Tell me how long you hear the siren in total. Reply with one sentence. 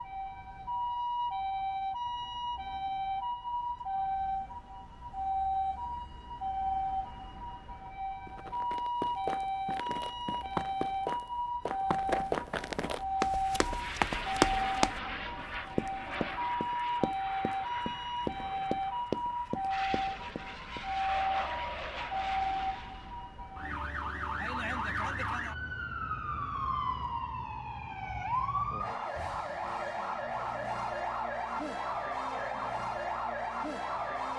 The siren can be heard for 34 seconds in total.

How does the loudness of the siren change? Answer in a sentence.
The loudness of the siren stays about the same.